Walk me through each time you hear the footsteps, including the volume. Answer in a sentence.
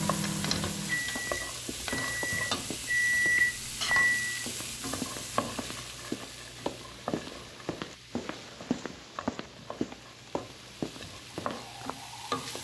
You can hear the footsteps from 1.1 to 11.9 s, getting louder.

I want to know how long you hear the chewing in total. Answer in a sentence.
You can't hear the chewing here.